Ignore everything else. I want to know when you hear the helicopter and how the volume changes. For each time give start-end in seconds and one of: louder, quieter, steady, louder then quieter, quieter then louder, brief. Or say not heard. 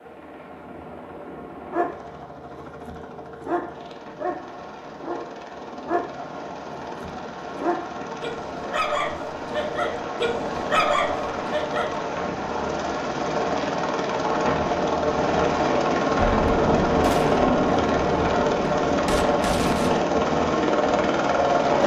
0.0-21.8 louder.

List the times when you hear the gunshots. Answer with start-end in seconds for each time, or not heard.
16.1-20.0.